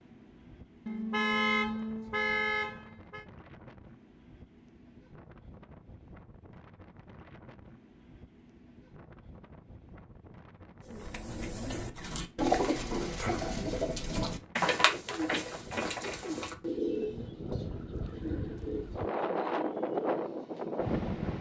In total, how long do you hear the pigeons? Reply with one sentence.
You can hear the pigeons for 10 seconds altogether.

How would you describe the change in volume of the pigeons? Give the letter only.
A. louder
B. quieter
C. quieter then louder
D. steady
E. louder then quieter
B.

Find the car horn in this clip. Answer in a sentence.
You can hear the car horn from 0.8 to 3.2 s.